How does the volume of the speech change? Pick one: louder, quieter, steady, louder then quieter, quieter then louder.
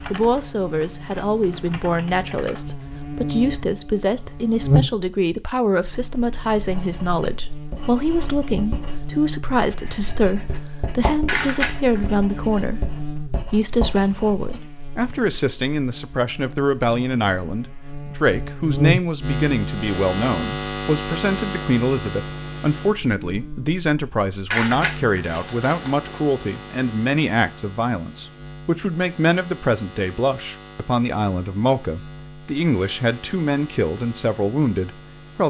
steady.